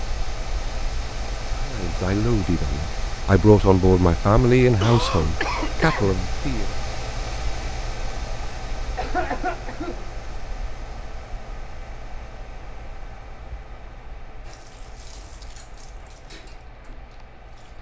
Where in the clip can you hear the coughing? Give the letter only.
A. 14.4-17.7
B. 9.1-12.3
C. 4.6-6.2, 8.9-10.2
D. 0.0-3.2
C.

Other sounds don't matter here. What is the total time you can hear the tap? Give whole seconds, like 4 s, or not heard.
3 s.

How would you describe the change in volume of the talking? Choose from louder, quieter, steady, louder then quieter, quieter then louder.
louder then quieter.